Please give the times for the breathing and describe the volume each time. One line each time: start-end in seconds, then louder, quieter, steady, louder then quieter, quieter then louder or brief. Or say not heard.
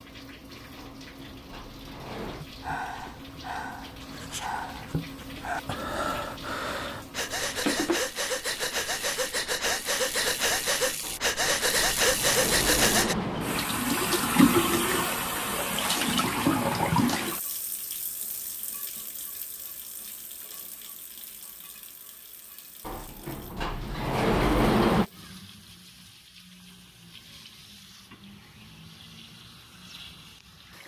2.2-13.2 louder.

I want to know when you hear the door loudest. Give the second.
25 s.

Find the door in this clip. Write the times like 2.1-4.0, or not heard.
0.8-2.5, 11.0-13.7, 22.9-25.1.